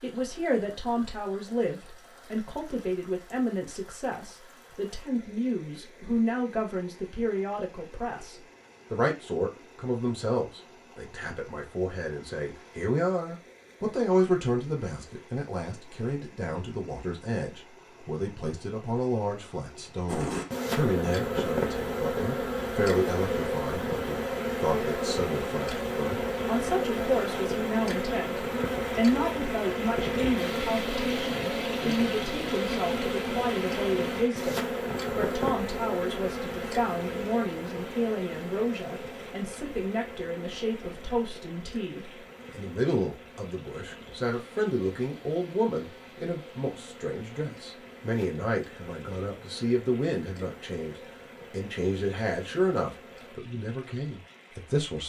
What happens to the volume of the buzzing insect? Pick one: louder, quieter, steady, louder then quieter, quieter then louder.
quieter.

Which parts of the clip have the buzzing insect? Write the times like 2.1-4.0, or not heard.
20.1-53.4.